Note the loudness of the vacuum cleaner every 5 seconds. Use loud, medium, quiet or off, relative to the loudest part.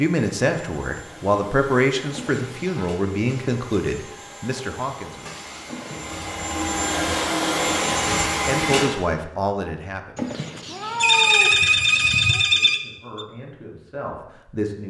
quiet, loud, off.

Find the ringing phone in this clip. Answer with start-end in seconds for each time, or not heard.
11.0-13.2.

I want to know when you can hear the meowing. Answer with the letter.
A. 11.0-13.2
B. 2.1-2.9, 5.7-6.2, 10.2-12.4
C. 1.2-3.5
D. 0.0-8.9
B.